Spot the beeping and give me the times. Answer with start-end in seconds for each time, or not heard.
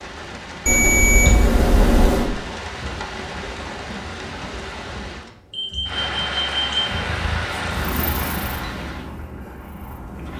0.7-2.3, 5.5-7.0.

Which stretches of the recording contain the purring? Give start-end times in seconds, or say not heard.
6.8-10.3.